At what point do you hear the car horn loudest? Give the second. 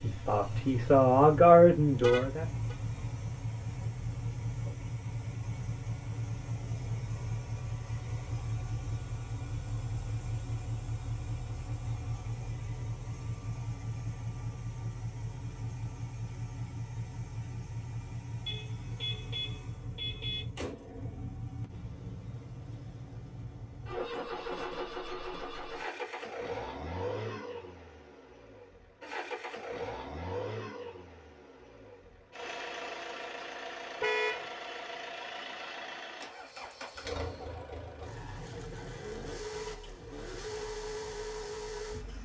34 s.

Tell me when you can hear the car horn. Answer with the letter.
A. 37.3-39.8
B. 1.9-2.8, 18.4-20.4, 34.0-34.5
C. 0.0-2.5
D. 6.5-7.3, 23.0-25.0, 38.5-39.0
B.